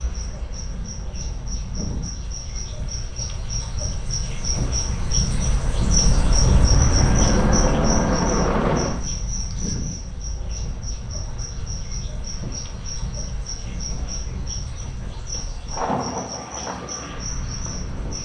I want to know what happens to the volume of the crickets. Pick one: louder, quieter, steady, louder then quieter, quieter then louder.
louder then quieter.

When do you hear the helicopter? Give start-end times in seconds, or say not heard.
5.3-9.0.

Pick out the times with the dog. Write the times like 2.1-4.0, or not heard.
not heard.